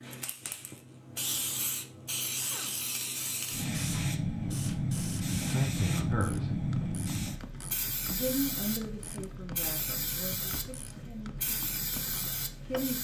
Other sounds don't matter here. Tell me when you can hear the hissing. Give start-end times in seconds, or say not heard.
0.0-13.0.